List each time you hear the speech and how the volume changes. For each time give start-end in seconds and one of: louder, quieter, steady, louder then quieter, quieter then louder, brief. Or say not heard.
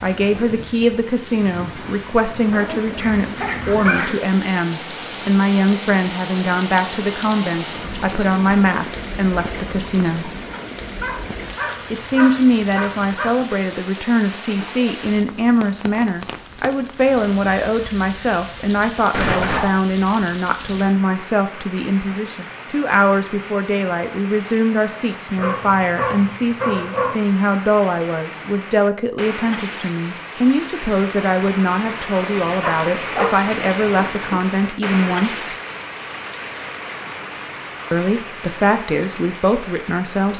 0.0-10.3 steady
11.9-35.5 steady
37.9-40.3 brief.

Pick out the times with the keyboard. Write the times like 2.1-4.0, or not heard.
not heard.